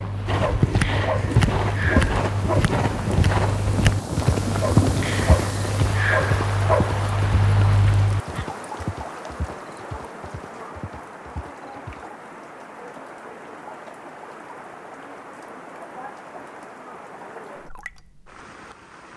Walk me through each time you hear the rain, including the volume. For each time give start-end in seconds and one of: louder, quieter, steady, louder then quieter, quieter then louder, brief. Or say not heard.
0.0-19.1 quieter.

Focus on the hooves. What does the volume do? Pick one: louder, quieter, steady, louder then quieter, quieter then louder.
quieter.